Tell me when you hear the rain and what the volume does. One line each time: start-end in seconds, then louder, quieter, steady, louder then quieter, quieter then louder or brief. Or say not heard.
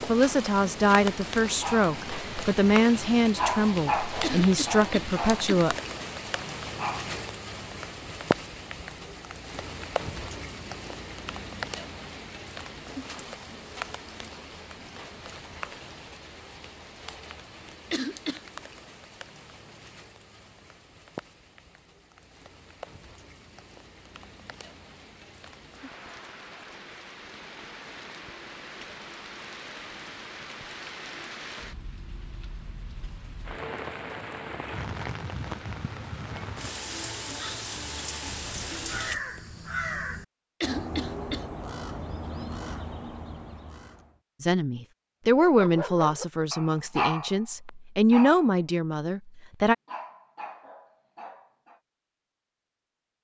0.0-39.2 quieter then louder.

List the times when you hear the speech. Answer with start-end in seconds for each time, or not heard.
0.1-5.8, 44.4-49.8.